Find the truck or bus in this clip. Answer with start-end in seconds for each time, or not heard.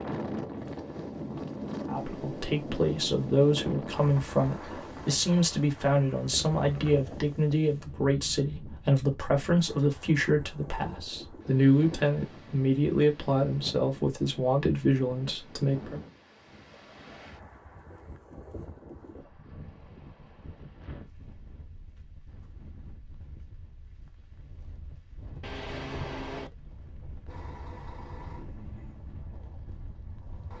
27.2-30.5.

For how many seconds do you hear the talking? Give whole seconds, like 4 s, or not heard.
14 s.